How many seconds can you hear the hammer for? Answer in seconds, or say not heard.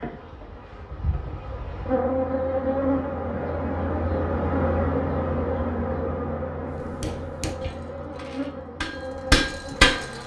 3 s.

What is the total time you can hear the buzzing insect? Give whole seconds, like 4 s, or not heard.
10 s.